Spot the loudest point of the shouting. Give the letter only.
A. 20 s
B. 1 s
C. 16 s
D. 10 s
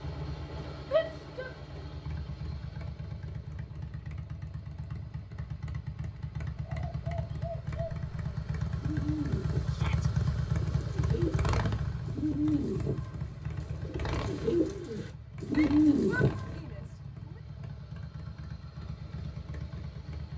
B.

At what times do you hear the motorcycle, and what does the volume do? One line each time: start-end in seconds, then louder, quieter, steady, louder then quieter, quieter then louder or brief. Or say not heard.
0.0-20.3 louder then quieter.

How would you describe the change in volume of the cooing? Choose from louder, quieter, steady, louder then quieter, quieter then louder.
louder.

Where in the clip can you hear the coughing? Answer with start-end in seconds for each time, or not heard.
not heard.